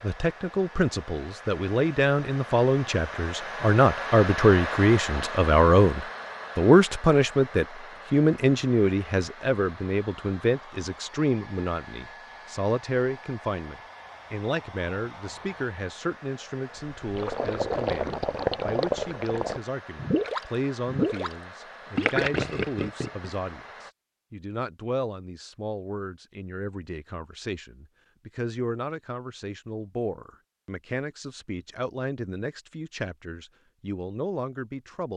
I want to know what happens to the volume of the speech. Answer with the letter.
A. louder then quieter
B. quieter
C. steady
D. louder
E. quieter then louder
B.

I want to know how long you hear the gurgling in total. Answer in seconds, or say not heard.
6 s.